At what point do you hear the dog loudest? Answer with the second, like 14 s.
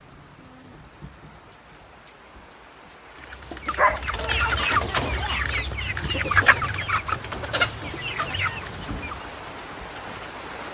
4 s.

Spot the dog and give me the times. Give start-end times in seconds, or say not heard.
3.8-5.8.